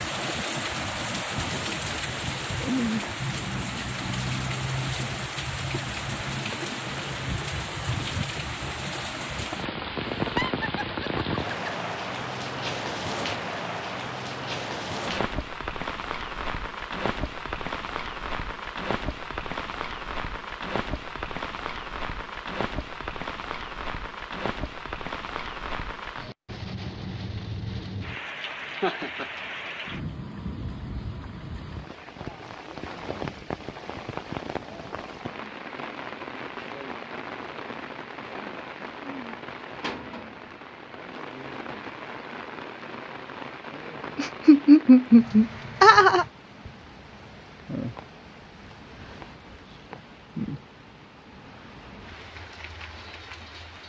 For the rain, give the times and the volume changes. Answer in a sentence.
You can hear the rain from 0.0 to 53.8 s, getting quieter.